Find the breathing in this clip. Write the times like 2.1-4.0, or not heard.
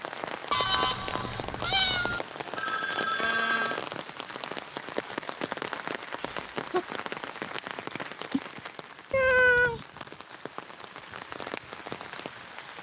not heard.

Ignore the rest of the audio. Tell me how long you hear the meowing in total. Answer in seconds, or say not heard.
3 s.